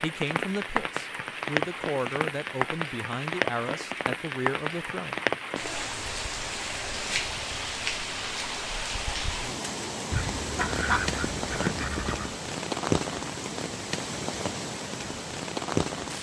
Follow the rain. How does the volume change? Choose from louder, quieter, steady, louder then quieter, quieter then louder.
steady.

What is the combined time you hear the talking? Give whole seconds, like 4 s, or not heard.
5 s.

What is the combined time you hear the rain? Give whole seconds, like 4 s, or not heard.
16 s.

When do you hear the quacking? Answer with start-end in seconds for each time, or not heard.
10.1-12.3.